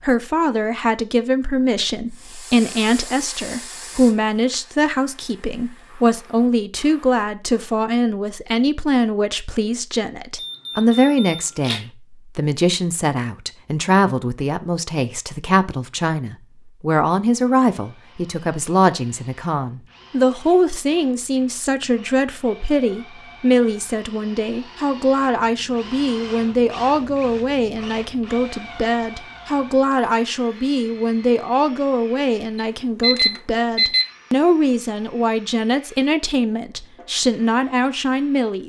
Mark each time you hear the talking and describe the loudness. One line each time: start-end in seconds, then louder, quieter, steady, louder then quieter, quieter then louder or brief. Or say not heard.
0.0-38.6 steady.